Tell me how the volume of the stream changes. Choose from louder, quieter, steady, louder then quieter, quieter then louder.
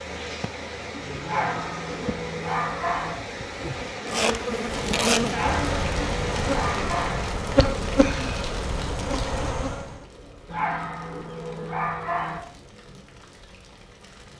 steady.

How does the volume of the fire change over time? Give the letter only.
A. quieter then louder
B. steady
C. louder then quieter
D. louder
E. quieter
E.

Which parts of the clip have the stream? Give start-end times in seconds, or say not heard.
0.0-7.4.